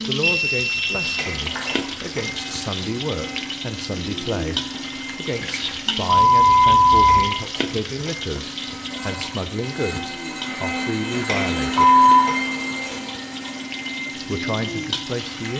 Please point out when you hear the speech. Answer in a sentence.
The speech can be heard from 0.1 to 11.8 s and from 14.2 to 15.5 s.